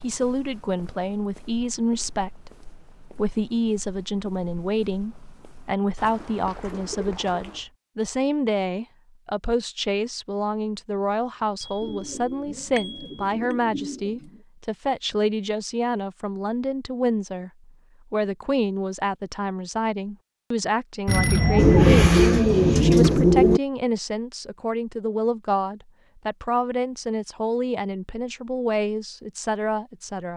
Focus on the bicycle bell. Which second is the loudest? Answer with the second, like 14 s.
22 s.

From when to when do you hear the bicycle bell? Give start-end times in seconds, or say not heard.
11.6-13.6, 21.1-22.1.